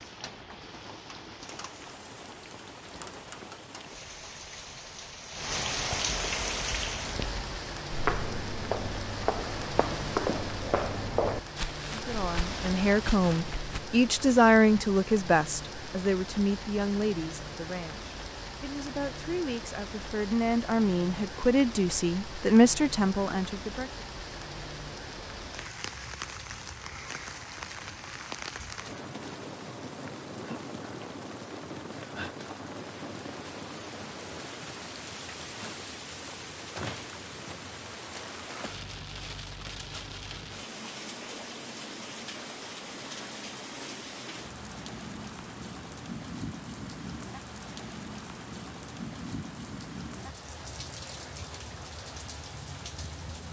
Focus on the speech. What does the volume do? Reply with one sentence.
The loudness of the speech goes down, then up.